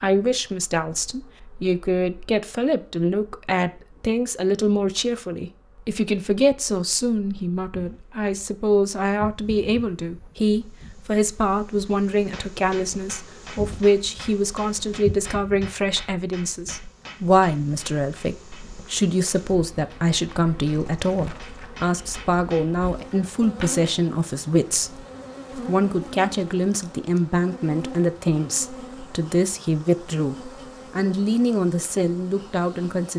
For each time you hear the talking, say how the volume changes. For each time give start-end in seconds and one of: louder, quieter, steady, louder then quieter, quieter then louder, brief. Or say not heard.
0.0-33.1 steady.